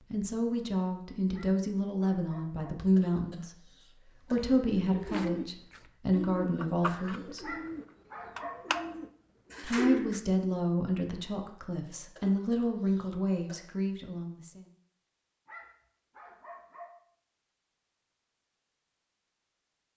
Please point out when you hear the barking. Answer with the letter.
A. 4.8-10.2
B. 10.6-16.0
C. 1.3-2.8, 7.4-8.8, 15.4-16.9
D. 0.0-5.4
C.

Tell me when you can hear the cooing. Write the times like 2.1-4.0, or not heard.
4.8-10.2.